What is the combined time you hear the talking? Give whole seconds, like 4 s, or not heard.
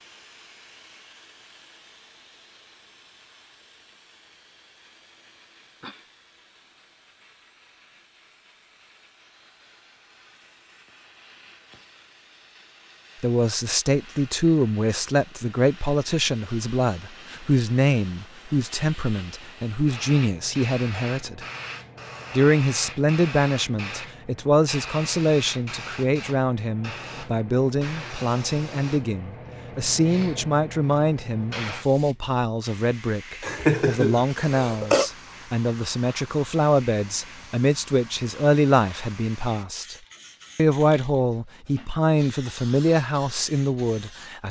30 s.